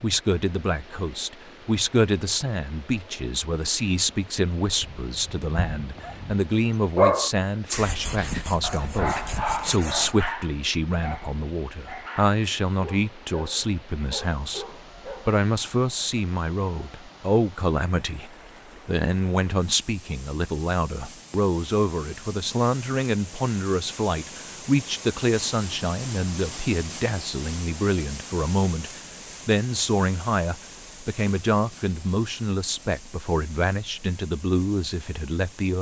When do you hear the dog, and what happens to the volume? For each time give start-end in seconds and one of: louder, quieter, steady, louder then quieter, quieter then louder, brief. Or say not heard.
4.8-15.4 quieter.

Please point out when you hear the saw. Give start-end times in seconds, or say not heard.
7.7-10.2.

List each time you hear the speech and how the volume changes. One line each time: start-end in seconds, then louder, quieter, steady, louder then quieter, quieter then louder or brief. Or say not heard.
0.0-35.7 steady.